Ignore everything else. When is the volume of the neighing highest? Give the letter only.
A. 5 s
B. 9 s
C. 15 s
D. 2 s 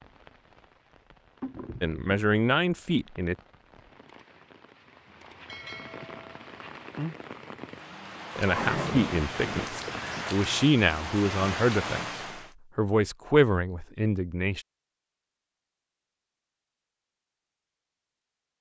B.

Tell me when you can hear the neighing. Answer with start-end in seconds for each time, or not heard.
8.3-10.2.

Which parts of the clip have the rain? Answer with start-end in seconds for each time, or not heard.
0.0-12.5.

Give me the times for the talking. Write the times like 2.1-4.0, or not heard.
1.8-3.4, 8.3-12.1, 12.8-14.6.